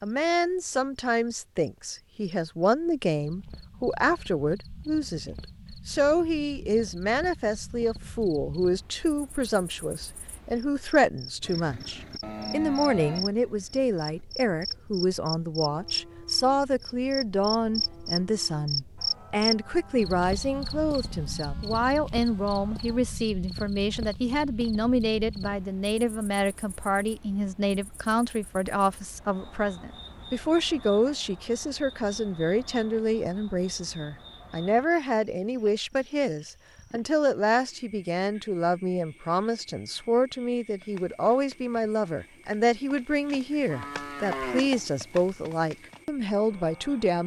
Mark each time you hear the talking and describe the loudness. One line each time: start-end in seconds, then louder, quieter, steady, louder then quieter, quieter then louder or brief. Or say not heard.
0.0-47.2 steady.